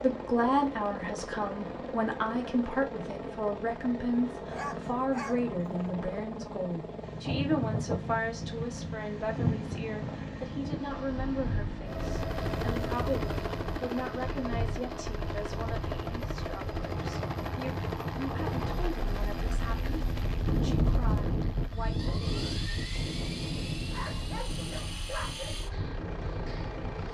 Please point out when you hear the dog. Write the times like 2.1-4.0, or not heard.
4.5-6.0, 23.9-25.6.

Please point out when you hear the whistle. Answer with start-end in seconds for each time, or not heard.
not heard.